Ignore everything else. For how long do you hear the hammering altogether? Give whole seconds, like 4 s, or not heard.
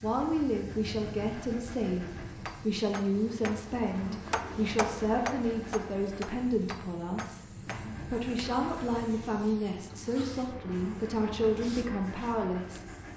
6 s.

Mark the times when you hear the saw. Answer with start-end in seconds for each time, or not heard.
not heard.